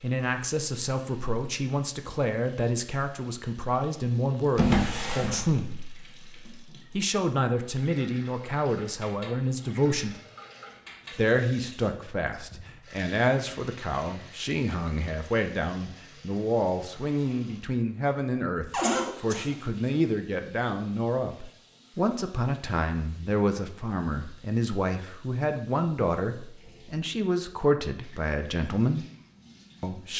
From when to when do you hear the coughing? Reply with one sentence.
You can hear the coughing from 18.8 to 19.6 s.